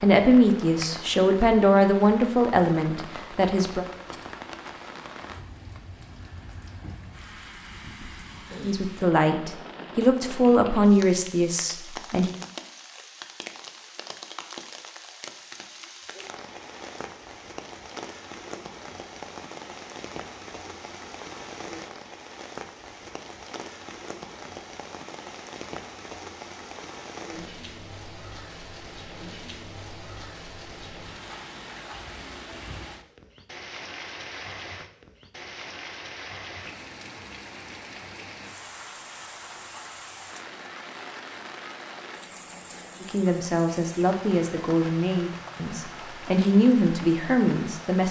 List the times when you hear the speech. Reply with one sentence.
You can hear the speech from 0.0 to 3.9 s, from 8.6 to 12.3 s and from 43.0 to 48.0 s.